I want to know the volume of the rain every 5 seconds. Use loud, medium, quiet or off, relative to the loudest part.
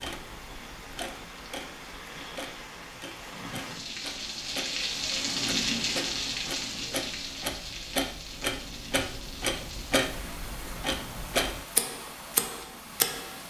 medium, loud, medium.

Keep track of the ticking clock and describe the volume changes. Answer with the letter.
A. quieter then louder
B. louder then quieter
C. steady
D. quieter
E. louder
E.